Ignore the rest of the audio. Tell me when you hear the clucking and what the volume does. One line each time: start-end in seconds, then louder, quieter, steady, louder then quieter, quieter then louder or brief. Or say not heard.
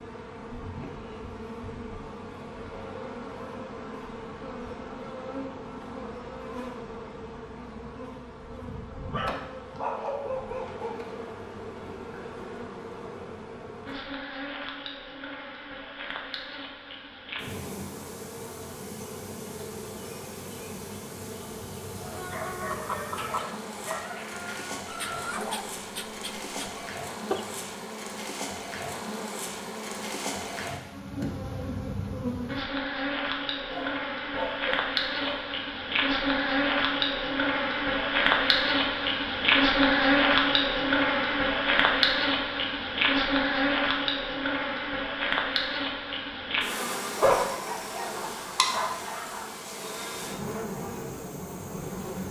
21.9-27.6 quieter.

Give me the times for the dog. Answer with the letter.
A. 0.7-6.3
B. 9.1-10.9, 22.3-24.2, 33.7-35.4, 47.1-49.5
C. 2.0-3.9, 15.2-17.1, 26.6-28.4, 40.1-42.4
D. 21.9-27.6
B.